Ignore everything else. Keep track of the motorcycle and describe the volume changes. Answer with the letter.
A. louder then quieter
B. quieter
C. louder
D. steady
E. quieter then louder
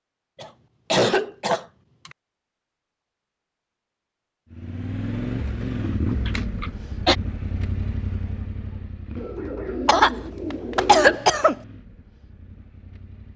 B.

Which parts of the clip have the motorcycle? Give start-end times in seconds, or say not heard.
4.5-13.3.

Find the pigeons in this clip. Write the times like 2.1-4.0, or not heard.
9.2-11.2.